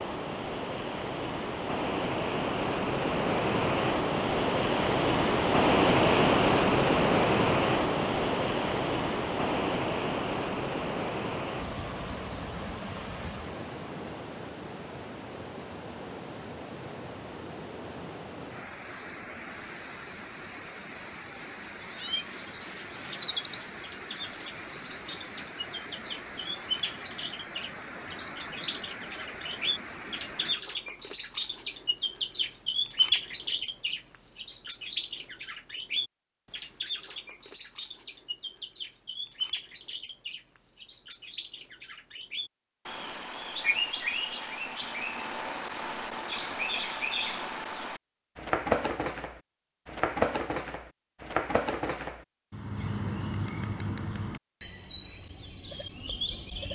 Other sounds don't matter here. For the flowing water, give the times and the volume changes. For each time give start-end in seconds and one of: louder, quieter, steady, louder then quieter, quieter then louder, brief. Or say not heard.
0.0-30.6 quieter.